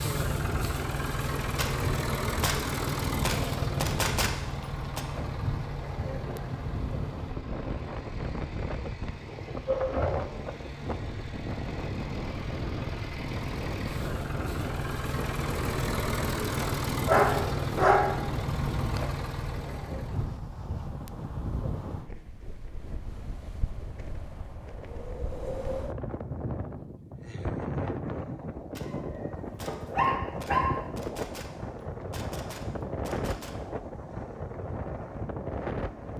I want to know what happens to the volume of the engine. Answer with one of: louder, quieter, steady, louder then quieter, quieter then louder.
quieter then louder.